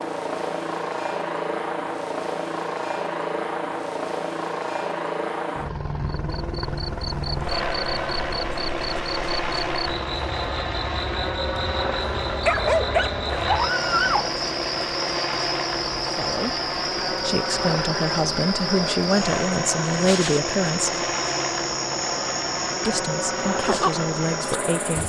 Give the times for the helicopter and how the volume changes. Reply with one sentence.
The helicopter can be heard from 0.0 to 25.0 s, at a steady volume.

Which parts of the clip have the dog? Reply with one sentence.
The dog can be heard from 12.4 to 14.3 s.